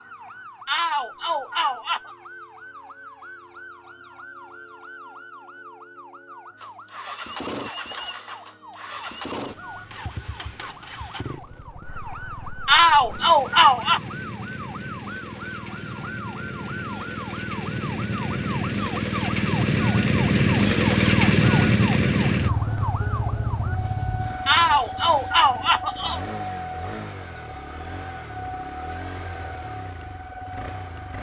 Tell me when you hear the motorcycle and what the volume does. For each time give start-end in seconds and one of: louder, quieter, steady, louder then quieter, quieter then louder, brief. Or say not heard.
6.6-31.1 louder then quieter.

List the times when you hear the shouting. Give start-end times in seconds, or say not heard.
0.7-2.1, 12.7-14.0, 24.4-26.2.